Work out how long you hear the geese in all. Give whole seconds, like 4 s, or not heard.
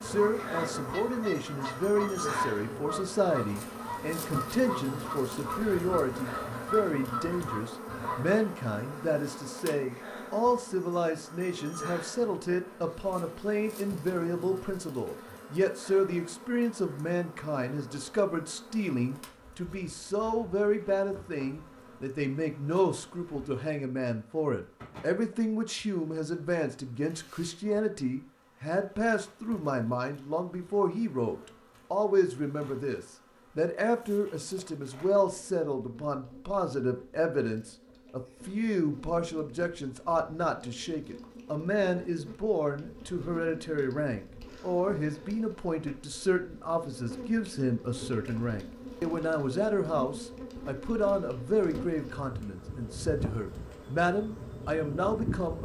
8 s.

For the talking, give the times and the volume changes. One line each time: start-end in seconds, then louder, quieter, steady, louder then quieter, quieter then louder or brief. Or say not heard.
0.0-55.5 steady.